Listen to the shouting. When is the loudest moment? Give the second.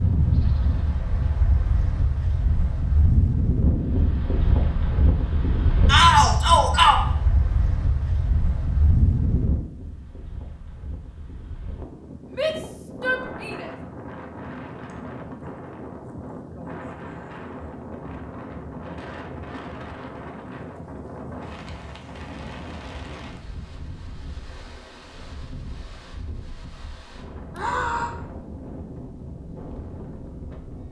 6 s.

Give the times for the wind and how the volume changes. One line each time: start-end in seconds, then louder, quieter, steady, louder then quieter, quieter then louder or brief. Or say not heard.
0.0-30.8 quieter.